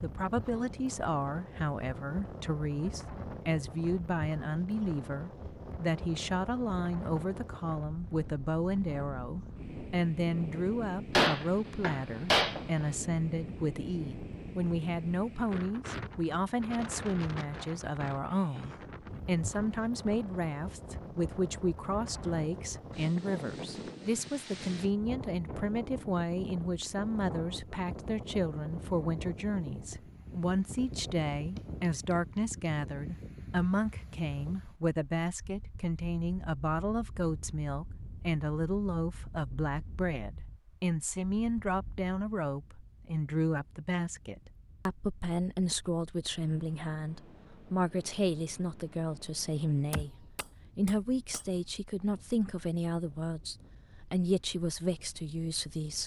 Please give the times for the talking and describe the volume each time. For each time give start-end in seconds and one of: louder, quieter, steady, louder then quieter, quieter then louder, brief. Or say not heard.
0.0-56.0 steady.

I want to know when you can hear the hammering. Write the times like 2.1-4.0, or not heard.
11.2-12.9, 31.4-32.5, 49.9-51.5.